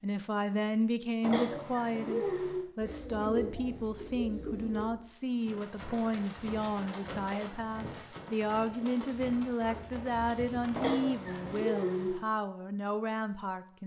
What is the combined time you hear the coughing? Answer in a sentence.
The coughing can be heard for 3 seconds in total.